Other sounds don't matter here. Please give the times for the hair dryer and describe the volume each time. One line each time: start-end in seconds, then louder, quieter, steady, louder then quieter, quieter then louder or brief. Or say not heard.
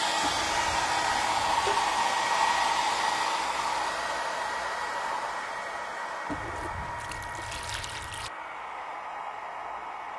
0.0-10.1 quieter.